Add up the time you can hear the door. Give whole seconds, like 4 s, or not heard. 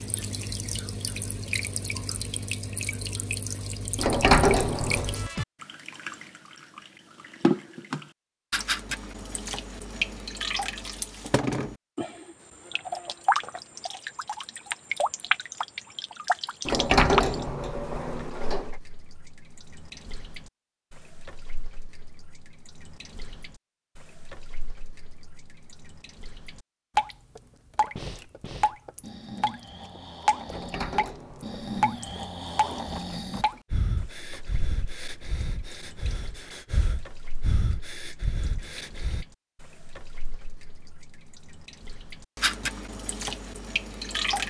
5 s.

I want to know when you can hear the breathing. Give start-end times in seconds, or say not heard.
27.9-39.2.